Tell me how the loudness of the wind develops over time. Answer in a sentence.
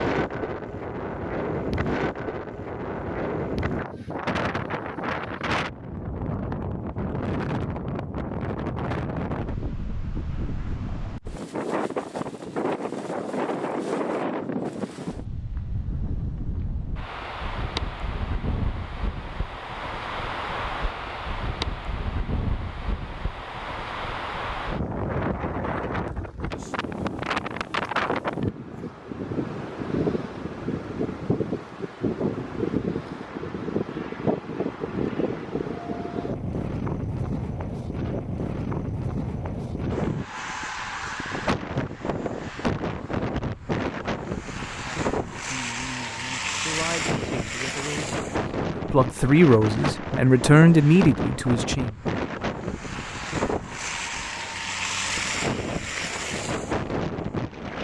The loudness of the wind stays about the same.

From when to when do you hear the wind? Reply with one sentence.
The wind can be heard from 0.0 to 57.7 s.